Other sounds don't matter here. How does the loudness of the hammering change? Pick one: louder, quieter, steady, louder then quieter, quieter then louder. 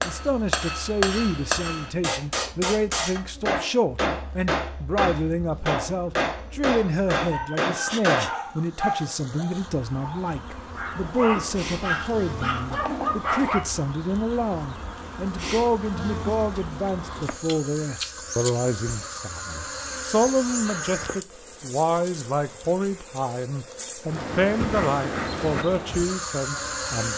steady.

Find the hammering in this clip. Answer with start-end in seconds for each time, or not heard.
0.0-8.4.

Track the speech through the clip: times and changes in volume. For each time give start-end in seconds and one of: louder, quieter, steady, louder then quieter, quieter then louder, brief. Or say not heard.
0.0-27.1 steady.